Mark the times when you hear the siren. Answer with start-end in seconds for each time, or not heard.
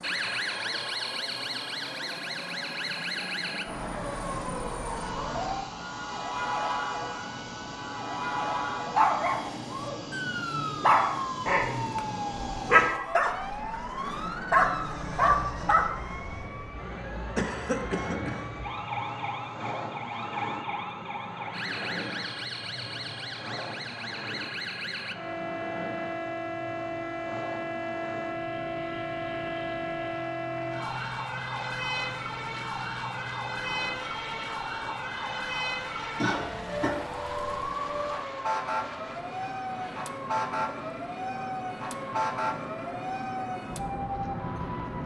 0.0-45.0.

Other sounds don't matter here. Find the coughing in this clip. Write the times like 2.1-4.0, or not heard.
17.4-18.6, 36.1-37.0.